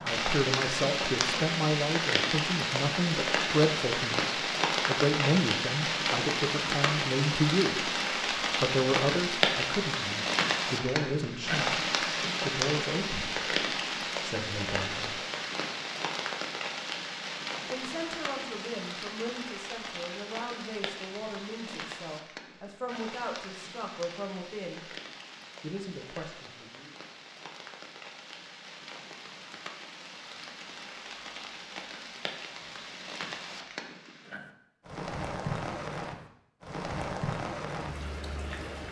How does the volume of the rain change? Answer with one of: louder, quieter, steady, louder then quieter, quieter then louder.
quieter then louder.